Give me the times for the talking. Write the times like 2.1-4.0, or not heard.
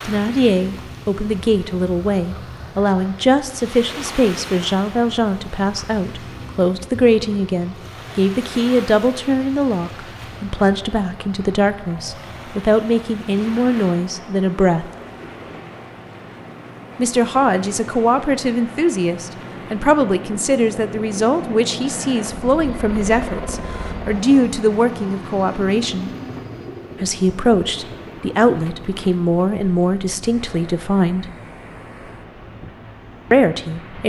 0.1-14.8, 16.9-26.1, 27.0-31.2, 33.3-34.0.